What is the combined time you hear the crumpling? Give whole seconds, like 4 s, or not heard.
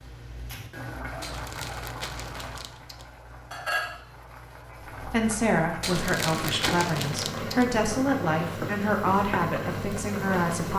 4 s.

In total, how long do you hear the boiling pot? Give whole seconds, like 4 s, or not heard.
11 s.